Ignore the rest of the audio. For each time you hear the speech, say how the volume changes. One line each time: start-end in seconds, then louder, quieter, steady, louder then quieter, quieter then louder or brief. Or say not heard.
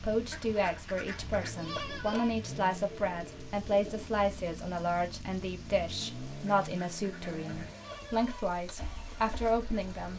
0.0-10.1 steady.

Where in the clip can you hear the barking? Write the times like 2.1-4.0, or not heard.
not heard.